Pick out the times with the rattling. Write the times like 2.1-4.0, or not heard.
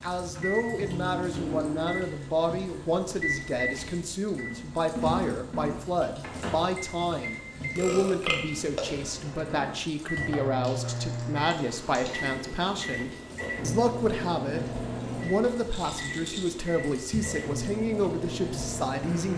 15.7-16.6.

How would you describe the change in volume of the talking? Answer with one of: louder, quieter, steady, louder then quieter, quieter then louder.
steady.